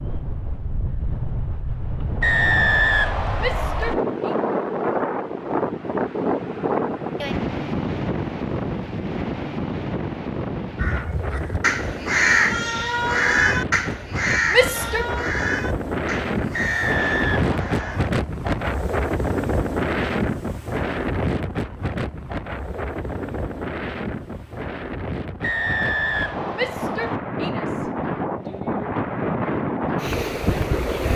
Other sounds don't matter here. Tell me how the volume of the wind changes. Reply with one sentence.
The loudness of the wind stays about the same.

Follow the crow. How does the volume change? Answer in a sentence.
The volume of the crow goes down.